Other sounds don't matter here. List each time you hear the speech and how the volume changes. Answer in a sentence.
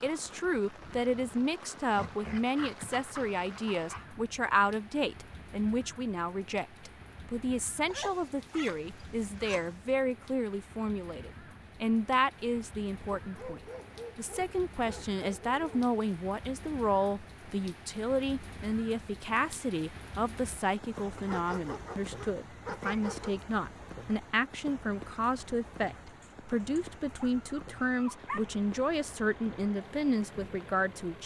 You can hear the speech from 0.0 to 31.2 s, at a steady volume.